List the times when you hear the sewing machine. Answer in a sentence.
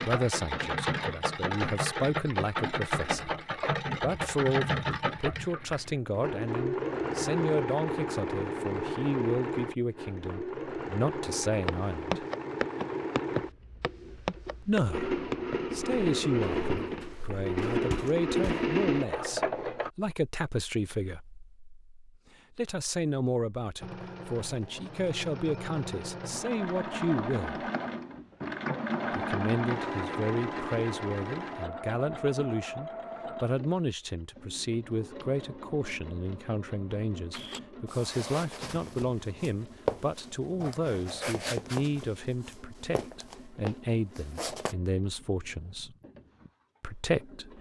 The sewing machine can be heard from 0.0 to 19.9 s and from 23.8 to 47.5 s.